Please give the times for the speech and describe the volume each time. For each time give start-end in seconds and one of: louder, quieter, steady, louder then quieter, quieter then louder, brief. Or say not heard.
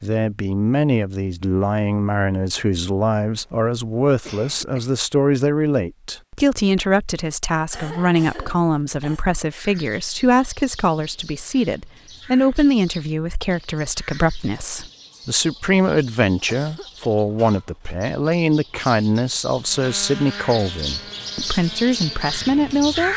0.0-23.1 steady.